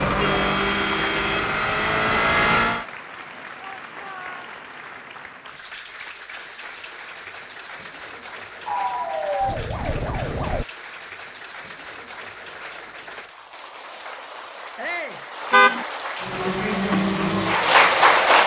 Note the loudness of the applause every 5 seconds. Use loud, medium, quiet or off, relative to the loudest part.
quiet, quiet, quiet, loud.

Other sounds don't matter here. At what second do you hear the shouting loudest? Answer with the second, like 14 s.
15 s.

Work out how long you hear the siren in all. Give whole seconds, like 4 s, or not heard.
2 s.